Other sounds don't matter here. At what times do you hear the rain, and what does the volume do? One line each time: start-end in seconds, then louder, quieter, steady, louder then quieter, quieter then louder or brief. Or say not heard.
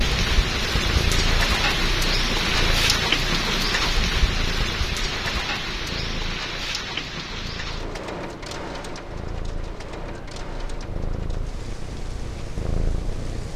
0.0-13.5 quieter.